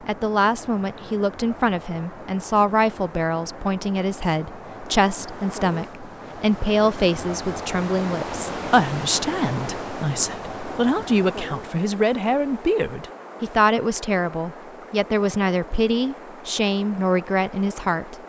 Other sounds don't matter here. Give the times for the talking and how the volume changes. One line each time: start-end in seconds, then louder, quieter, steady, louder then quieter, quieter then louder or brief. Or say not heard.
0.1-18.1 steady.